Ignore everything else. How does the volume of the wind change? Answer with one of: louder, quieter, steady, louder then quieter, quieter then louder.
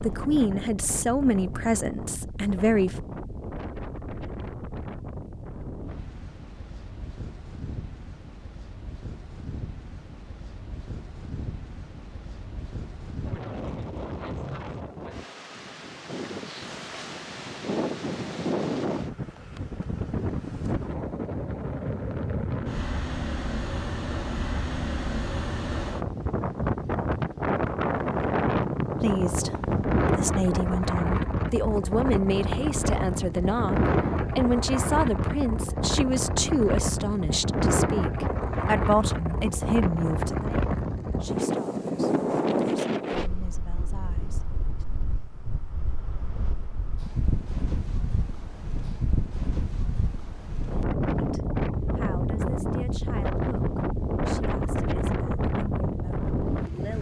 louder.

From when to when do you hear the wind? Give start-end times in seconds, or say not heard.
0.0-56.9.